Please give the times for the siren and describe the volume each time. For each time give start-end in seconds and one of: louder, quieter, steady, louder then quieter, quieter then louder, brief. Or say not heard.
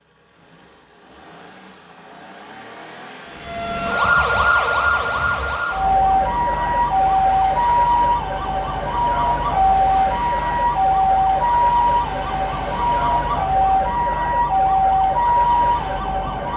3.2-16.5 steady.